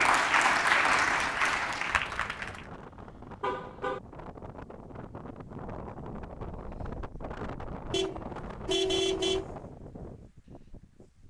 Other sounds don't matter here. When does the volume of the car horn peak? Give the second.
9 s.